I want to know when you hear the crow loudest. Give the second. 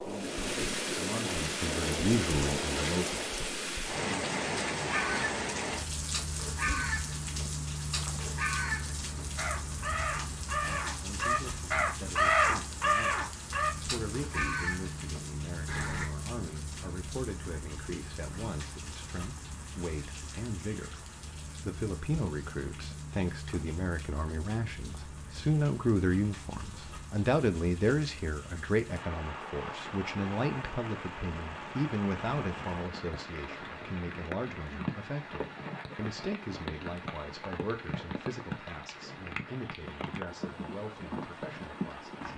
12 s.